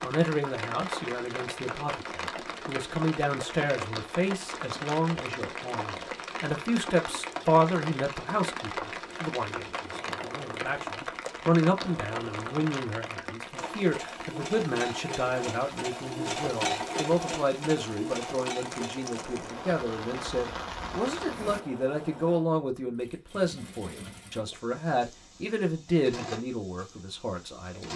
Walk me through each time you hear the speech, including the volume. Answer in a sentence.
You can hear the speech from 0.0 to 27.9 s, at a steady volume.